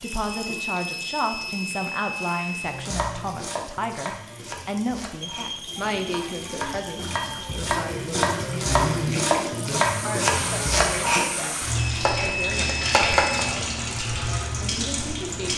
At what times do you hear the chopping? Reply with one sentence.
The chopping can be heard from 2.6 to 11.3 s and from 11.9 to 13.4 s.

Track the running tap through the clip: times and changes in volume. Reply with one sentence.
The running tap can be heard from 0.0 to 15.5 s, getting louder.